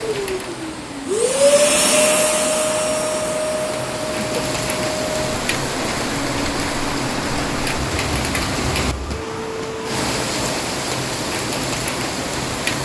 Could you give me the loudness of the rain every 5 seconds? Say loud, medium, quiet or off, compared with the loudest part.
medium, loud, loud.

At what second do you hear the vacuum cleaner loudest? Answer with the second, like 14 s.
2 s.